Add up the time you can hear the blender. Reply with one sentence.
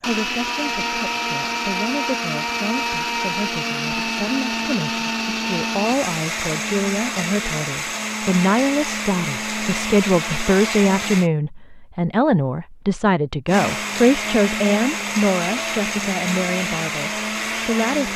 The blender can be heard for 16 seconds in total.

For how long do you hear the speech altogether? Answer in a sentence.
You can hear the speech for 18 seconds altogether.